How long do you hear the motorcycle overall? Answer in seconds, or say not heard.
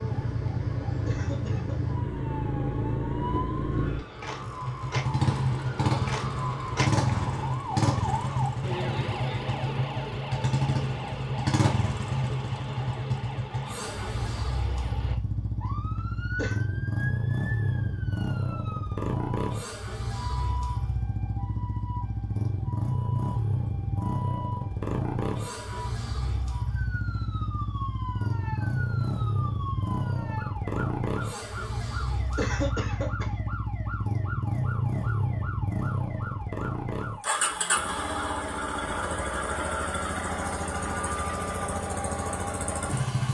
43 s.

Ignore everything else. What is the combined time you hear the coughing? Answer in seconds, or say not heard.
2 s.